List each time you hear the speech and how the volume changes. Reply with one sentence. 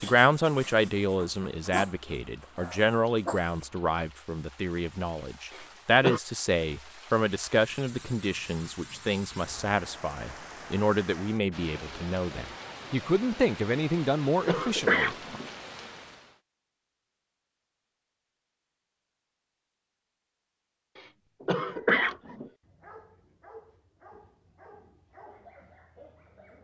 The speech can be heard from 0.0 to 15.2 s, at a steady volume.